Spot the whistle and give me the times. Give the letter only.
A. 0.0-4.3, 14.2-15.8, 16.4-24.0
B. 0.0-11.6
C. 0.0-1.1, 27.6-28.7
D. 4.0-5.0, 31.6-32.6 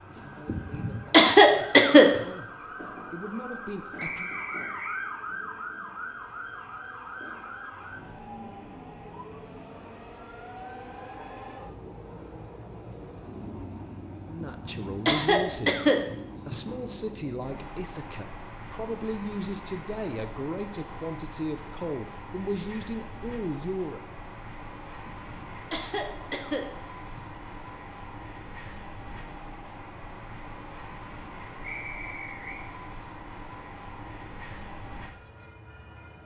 D.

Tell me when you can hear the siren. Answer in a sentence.
The siren can be heard from 0.0 to 11.6 s.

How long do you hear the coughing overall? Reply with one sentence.
The coughing can be heard for 6 seconds in total.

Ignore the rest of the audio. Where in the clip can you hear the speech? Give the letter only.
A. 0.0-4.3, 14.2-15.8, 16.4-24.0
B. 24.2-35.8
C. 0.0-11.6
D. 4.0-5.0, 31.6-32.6
A.